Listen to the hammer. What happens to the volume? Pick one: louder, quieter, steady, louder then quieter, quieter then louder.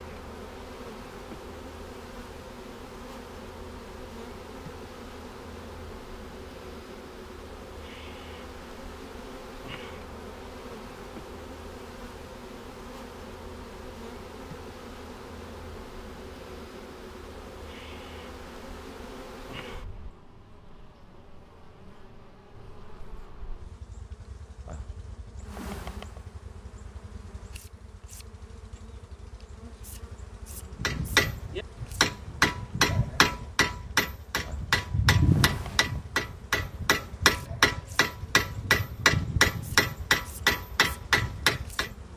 steady.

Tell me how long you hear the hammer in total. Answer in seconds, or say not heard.
11 s.